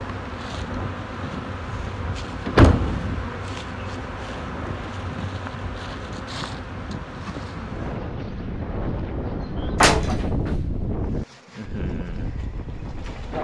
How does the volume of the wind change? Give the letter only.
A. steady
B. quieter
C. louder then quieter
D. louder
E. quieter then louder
D.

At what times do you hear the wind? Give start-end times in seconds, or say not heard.
0.0-13.3.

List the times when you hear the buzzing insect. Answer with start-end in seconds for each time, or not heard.
0.0-13.3.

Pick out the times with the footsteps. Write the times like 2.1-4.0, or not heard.
not heard.